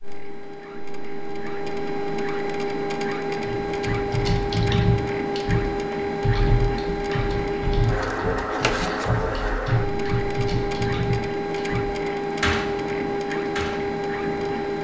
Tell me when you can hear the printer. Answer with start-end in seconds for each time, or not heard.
0.0-14.7.